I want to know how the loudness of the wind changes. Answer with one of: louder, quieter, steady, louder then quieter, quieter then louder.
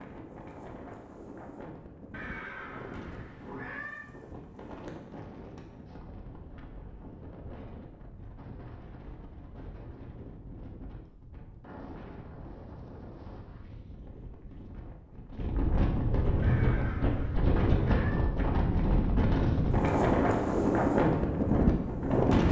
louder.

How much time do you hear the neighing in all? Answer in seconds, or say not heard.
4 s.